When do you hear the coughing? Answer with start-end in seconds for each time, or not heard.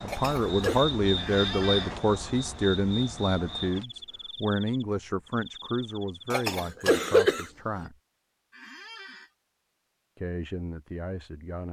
0.1-0.8, 6.3-7.5.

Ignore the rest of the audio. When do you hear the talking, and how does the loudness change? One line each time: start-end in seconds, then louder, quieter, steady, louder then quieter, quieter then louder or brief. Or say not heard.
0.0-8.0 quieter
10.2-11.6 brief.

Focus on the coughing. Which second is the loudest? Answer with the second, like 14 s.
7 s.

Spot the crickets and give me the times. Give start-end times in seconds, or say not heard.
0.0-6.5.